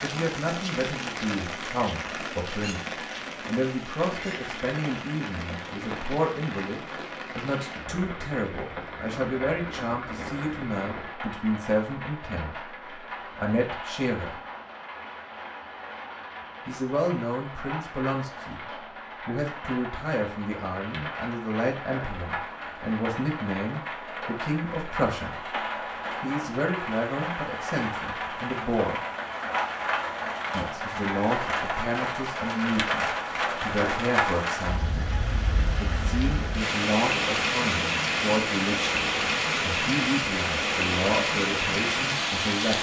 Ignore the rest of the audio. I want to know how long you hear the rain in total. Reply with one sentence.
You can hear the rain for 43 seconds altogether.